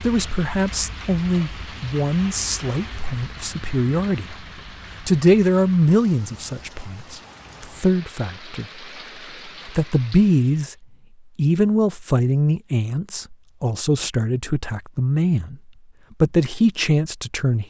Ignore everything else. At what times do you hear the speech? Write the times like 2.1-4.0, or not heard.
0.0-4.3, 5.0-8.8, 9.4-10.8, 11.3-15.6, 16.2-17.6.